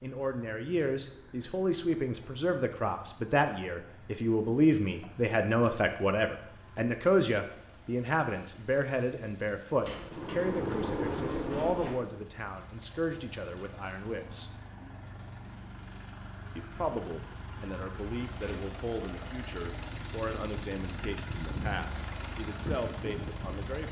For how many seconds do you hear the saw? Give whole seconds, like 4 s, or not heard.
not heard.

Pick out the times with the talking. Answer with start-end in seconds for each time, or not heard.
0.0-14.6, 16.6-23.8.